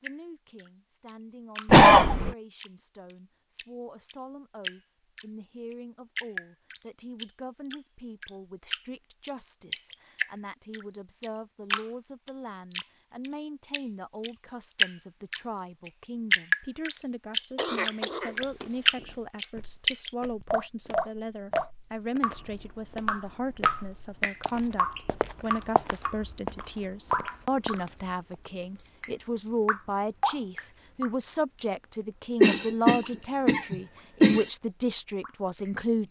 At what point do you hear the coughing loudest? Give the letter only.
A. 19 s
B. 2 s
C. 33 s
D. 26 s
B.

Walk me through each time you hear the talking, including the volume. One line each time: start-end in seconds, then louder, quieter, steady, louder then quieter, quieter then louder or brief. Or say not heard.
0.0-36.0 louder.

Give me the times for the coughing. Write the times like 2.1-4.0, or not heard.
1.6-2.4, 17.6-18.6, 32.4-34.5.